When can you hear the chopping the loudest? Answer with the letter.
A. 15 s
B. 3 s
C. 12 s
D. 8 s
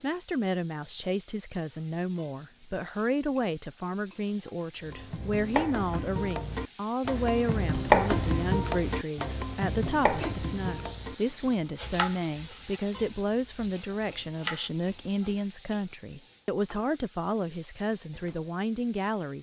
D.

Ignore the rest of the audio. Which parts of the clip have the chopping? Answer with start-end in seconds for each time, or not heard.
4.8-15.3.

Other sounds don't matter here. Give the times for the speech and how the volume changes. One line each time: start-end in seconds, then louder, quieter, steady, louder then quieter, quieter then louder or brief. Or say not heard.
0.0-19.3 steady.